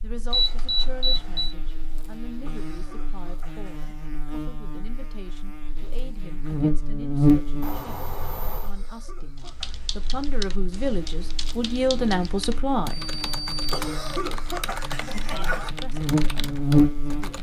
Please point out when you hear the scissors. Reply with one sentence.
You can't hear the scissors here.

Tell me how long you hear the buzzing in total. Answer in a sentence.
You can hear the buzzing for 17 seconds altogether.